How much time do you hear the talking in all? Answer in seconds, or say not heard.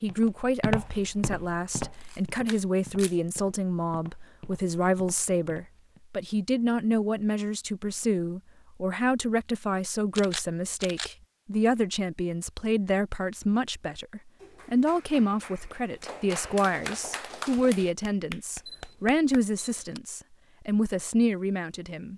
22 s.